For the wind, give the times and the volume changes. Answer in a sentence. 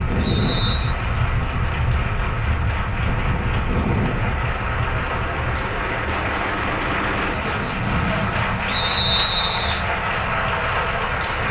You can hear the wind from 0.0 to 11.4 s, getting quieter.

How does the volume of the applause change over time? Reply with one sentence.
The volume of the applause goes up.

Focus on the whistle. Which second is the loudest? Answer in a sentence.
The loudest moment of the whistle is at 9 seconds.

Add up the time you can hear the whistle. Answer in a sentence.
You can hear the whistle for 2 seconds altogether.